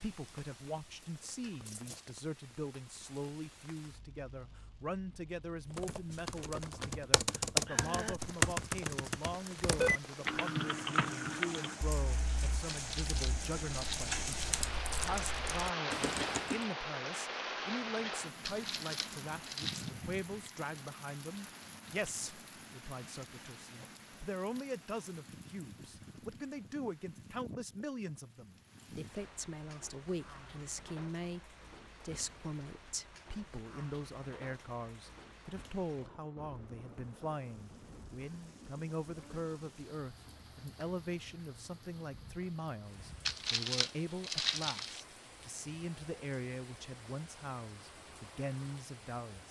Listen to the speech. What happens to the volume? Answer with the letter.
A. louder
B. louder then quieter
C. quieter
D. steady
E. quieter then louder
D.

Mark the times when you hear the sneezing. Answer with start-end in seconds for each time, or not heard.
7.7-8.2.